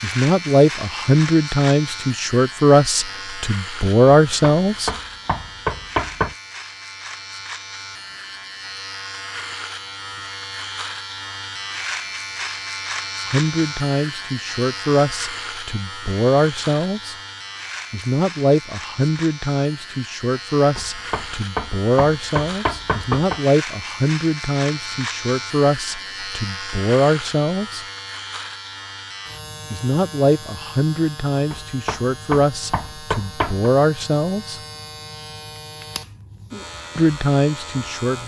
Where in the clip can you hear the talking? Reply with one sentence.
You can hear the talking from 0.0 to 4.9 s, from 13.2 to 17.1 s, from 17.9 to 27.9 s, from 29.7 to 34.6 s and from 37.0 to 38.2 s.